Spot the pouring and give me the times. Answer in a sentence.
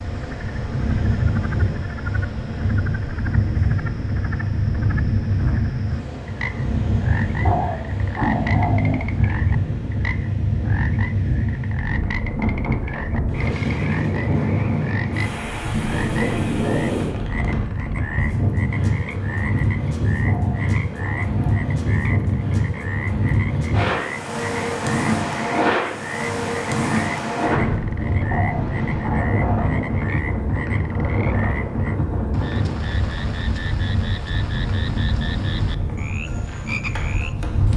You can't hear the pouring here.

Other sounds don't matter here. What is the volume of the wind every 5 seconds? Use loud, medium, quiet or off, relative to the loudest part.
loud, loud, loud, loud, loud, loud, loud, medium.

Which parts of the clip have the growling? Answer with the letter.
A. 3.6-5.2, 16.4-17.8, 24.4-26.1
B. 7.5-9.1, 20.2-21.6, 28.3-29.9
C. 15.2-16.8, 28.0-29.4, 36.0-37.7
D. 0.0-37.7
B.